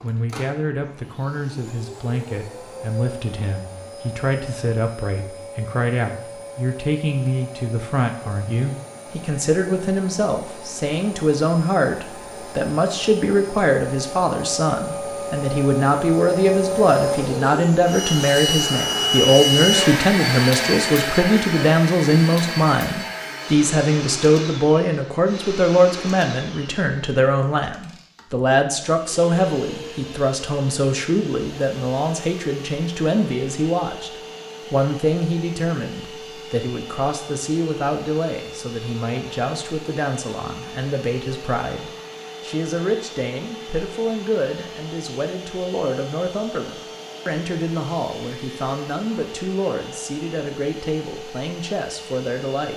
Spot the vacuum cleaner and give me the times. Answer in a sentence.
The vacuum cleaner can be heard from 0.0 to 52.7 s.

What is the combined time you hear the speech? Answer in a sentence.
The speech can be heard for 53 seconds in total.